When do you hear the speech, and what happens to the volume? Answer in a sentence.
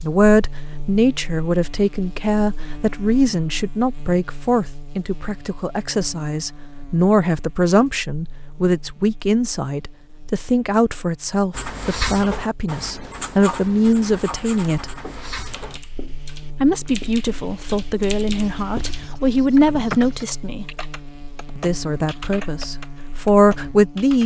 You can hear the speech from 0.0 to 14.9 s, at a steady volume; from 16.6 to 20.6 s, getting louder; and briefly from 21.6 to 24.2 s.